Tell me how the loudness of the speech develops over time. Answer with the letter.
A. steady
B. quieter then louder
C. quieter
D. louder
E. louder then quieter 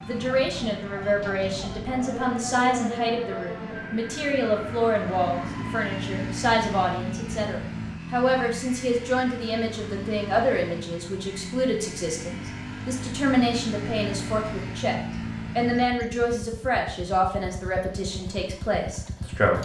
A.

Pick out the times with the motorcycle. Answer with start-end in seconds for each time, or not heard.
0.0-19.6.